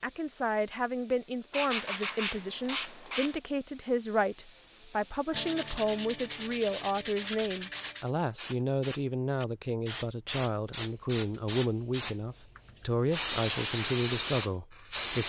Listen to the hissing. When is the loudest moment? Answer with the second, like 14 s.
14 s.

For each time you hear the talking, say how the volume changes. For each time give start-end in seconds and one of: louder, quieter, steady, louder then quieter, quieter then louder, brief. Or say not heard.
0.0-15.2 steady.